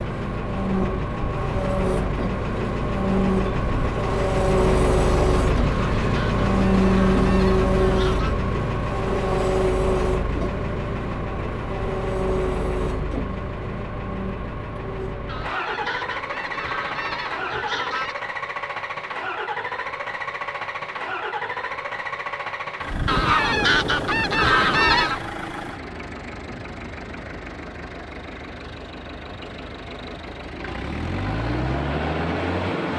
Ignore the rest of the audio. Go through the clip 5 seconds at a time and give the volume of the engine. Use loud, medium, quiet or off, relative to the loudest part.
loud, loud, medium, medium, medium, quiet, medium.